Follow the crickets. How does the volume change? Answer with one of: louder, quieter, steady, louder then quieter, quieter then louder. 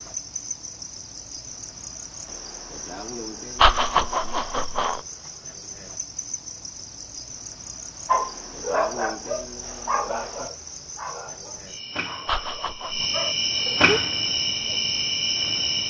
louder.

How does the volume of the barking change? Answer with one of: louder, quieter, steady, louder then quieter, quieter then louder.
quieter then louder.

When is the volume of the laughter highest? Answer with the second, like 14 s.
4 s.